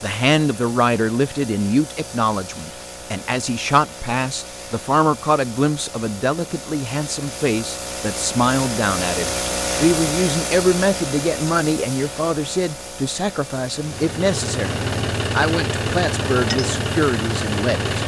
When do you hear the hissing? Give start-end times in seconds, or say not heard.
0.0-18.0.